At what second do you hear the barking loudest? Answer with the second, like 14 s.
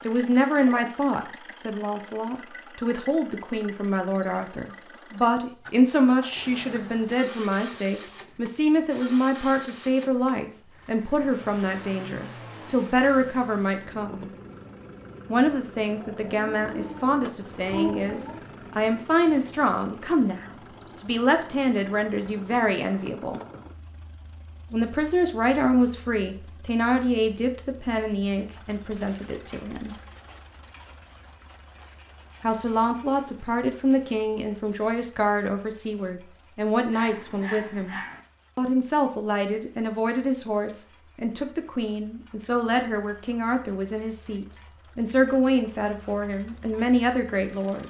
18 s.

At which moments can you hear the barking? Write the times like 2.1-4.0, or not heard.
15.9-18.4, 36.9-38.2.